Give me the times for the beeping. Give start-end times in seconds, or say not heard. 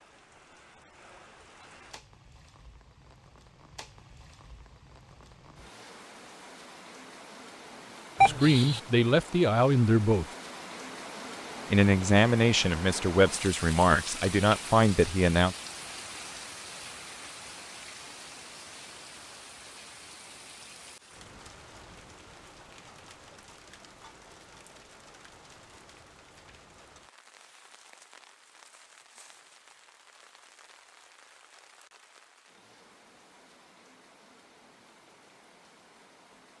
8.2-8.8.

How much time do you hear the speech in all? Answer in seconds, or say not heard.
6 s.